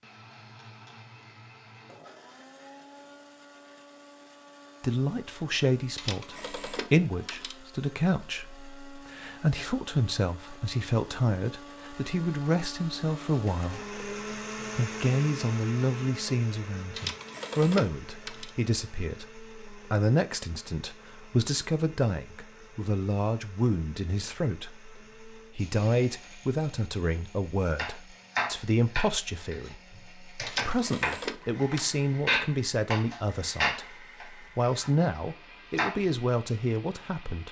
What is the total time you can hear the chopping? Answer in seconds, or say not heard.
8 s.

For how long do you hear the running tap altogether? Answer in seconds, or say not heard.
not heard.